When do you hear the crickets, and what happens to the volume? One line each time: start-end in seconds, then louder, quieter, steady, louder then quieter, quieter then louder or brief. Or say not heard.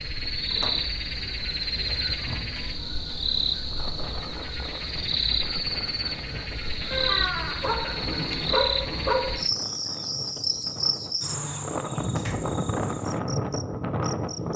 0.0-14.5 quieter.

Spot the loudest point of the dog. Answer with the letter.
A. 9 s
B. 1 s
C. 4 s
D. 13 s
A.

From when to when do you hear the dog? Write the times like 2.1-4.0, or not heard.
7.6-9.3.